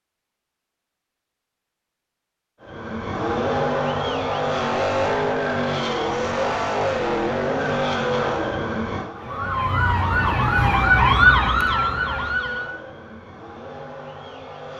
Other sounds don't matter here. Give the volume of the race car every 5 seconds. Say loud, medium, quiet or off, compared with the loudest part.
loud, loud, quiet.